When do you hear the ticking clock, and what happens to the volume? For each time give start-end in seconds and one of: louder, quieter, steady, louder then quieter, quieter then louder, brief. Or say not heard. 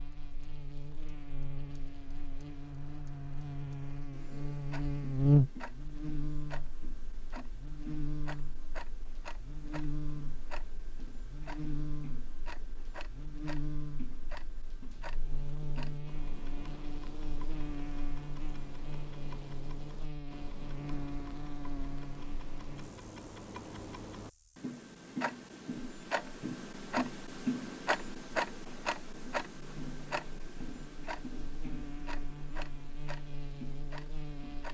0.0-34.7 louder.